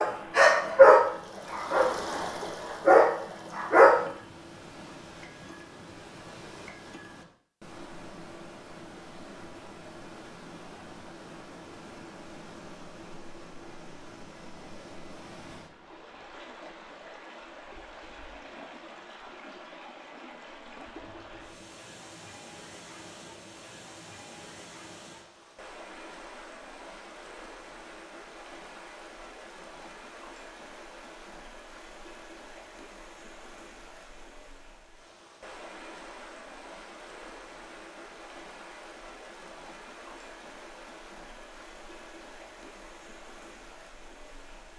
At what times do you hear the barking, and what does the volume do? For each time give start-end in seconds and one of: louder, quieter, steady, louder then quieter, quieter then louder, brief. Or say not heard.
0.0-4.0 quieter then louder.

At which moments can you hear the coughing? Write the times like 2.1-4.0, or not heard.
not heard.